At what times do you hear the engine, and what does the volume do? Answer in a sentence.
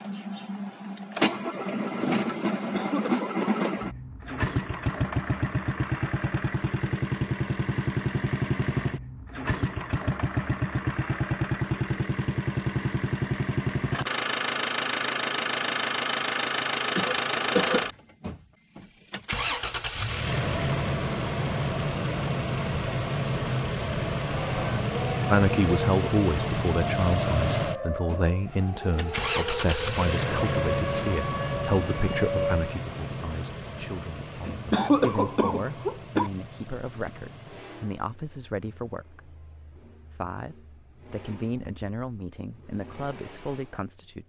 The engine can be heard from 0.0 to 44.2 s, getting quieter.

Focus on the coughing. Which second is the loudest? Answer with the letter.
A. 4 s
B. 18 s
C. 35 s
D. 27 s
C.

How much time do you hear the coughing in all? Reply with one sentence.
The coughing can be heard for 4 seconds in total.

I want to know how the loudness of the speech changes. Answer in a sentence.
The volume of the speech goes down.